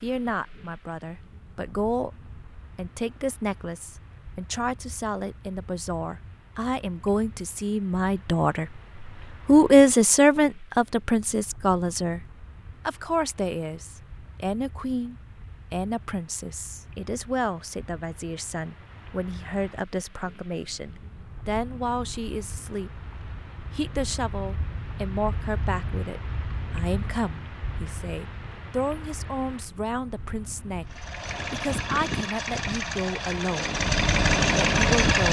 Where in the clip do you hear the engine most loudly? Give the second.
35 s.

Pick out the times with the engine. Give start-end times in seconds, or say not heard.
30.9-35.2.